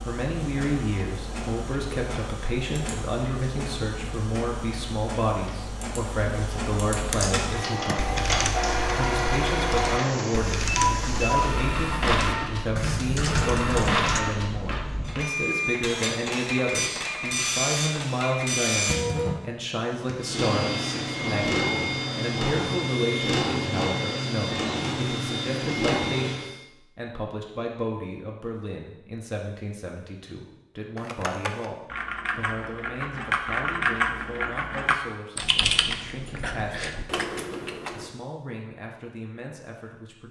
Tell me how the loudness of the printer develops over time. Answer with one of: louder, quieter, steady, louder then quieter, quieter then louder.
louder.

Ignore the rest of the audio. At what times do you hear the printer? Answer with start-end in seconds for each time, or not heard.
0.0-26.6.